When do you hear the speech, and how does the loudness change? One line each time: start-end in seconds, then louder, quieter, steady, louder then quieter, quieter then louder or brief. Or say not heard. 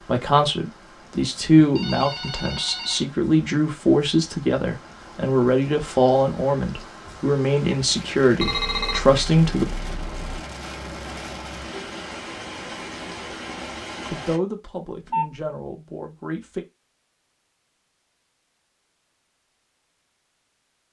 0.0-9.8 steady
14.1-16.6 brief.